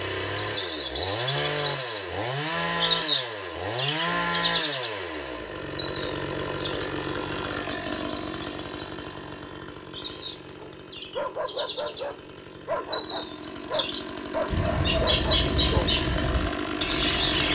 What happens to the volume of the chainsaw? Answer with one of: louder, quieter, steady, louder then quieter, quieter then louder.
quieter then louder.